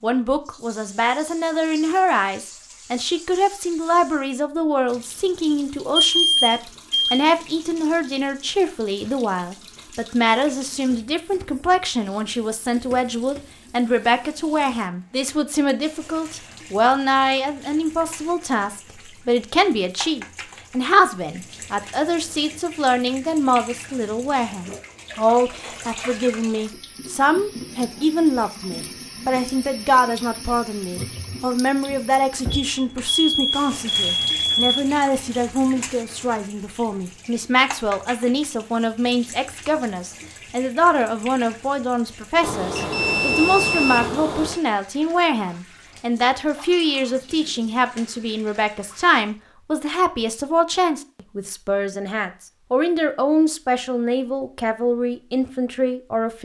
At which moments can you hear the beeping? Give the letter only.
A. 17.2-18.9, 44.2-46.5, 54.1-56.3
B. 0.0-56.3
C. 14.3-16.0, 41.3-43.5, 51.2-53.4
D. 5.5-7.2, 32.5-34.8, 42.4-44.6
D.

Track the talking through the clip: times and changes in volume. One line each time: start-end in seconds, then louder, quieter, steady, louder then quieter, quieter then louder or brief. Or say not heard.
0.0-56.3 steady.